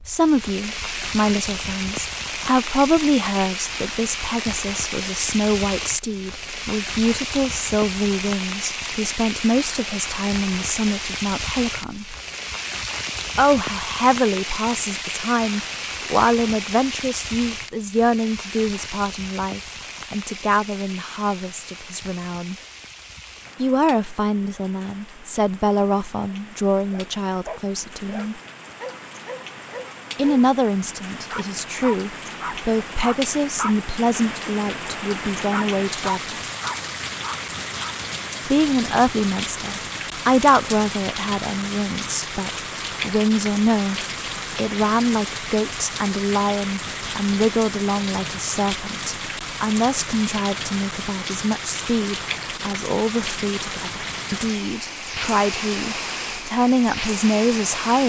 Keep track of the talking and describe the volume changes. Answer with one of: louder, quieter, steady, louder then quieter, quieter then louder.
steady.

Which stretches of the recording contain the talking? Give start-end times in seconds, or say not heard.
0.0-12.2, 13.3-22.6, 23.6-28.4, 30.1-36.4, 38.5-58.0.